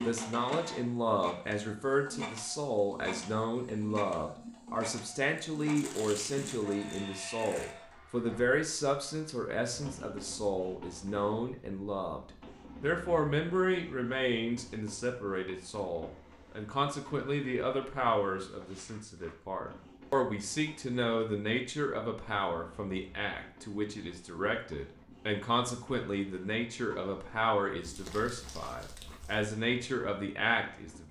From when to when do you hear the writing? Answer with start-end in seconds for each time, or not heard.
not heard.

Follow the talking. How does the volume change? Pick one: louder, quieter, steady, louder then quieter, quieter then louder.
steady.